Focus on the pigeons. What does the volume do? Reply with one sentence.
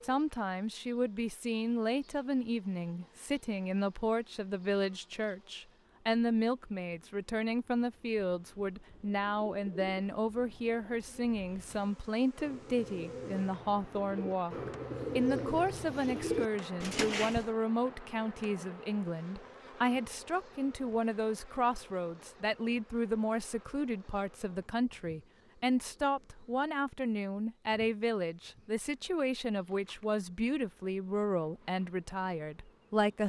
The loudness of the pigeons goes down, then up.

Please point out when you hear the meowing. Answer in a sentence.
The meowing can't be heard in this clip.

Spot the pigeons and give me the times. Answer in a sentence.
The pigeons can be heard from 8.9 to 17.5 s.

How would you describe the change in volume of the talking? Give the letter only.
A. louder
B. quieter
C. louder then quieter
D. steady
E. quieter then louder
D.